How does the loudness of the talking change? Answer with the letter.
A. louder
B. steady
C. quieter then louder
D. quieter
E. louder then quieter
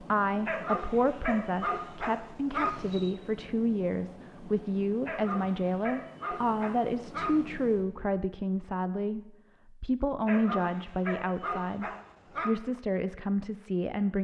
B.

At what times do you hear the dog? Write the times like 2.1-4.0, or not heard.
0.5-3.1, 5.0-7.5, 10.2-12.6.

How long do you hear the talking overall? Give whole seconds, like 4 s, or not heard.
14 s.